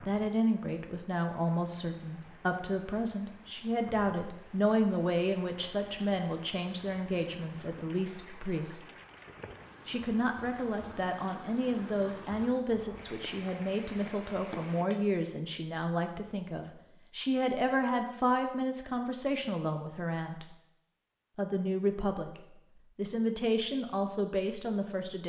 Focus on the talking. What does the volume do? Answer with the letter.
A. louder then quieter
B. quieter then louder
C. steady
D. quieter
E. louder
C.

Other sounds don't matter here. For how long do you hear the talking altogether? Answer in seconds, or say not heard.
23 s.